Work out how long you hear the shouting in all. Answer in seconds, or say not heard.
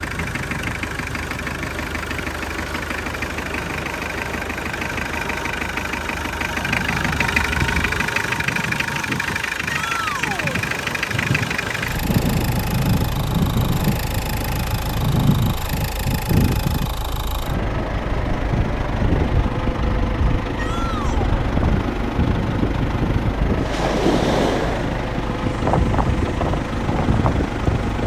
2 s.